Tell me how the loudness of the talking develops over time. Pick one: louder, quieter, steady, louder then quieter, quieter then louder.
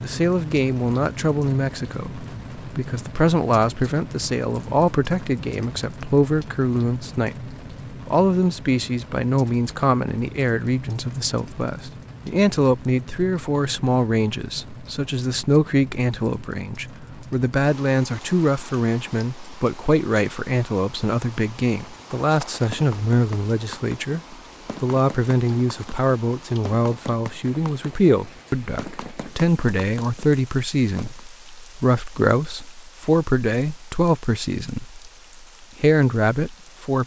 steady.